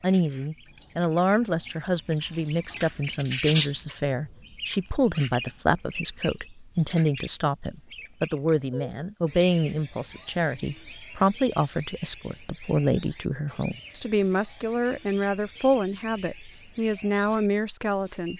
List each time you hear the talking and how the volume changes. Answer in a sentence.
The talking can be heard from 0.0 to 18.3 s, at a steady volume.